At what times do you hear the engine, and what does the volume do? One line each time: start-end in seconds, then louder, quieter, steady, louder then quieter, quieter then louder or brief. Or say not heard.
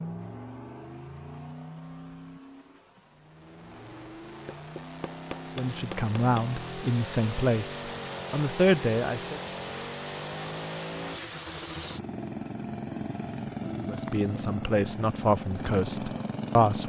0.0-16.8 louder.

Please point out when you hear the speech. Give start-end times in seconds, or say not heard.
5.5-9.4, 13.8-16.8.